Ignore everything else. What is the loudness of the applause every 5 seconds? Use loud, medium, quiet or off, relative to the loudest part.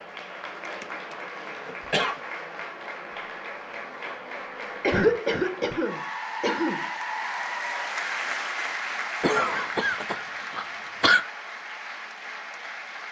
medium, loud, medium.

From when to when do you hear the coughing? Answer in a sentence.
You can hear the coughing from 0.7 to 2.1 s, from 4.8 to 6.8 s and from 9.2 to 11.2 s.